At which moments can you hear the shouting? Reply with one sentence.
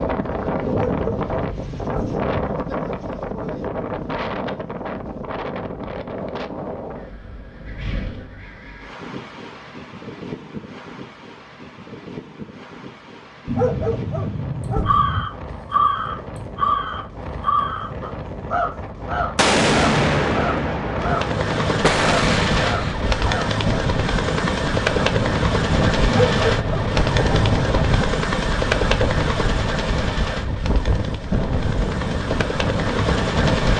The shouting can't be heard in this clip.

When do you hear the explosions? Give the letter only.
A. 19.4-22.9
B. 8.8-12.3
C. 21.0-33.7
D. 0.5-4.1
A.